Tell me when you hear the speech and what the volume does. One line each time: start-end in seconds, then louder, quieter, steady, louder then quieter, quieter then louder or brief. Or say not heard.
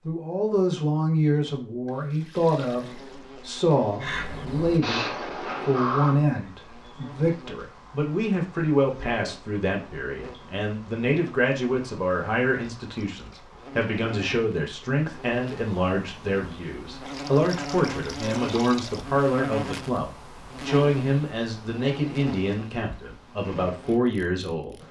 0.1-24.8 steady.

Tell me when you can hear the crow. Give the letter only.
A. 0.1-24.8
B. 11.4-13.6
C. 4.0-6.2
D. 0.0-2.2
C.